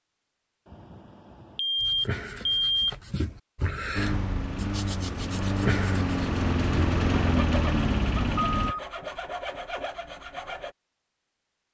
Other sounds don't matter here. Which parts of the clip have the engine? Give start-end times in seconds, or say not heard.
4.0-8.8.